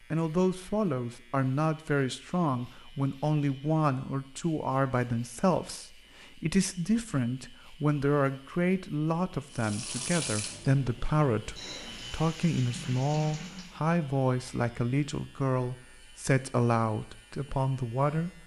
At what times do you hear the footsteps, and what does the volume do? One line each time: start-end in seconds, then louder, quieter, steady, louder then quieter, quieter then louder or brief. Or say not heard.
not heard.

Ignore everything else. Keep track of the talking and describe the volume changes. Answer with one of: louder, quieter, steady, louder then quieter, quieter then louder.
steady.